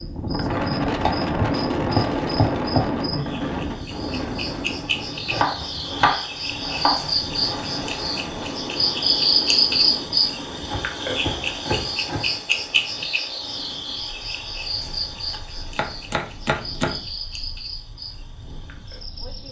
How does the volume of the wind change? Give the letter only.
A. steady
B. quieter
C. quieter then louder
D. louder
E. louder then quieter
B.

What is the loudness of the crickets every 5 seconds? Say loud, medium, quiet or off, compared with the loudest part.
medium, loud, loud, quiet.